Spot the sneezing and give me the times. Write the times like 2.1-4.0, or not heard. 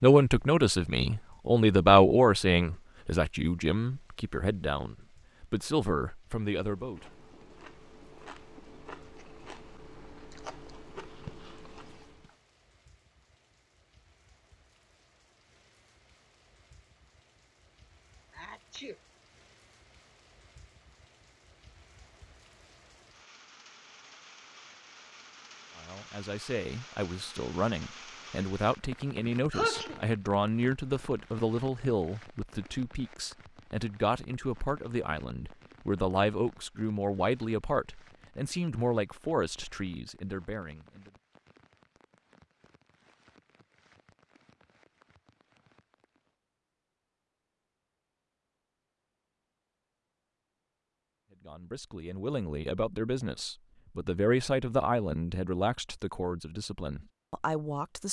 18.3-18.9, 29.5-30.1.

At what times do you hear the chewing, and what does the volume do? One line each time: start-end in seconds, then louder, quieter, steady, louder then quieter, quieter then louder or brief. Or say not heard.
6.5-12.3 louder.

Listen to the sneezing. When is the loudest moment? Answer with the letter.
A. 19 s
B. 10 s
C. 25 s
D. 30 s
D.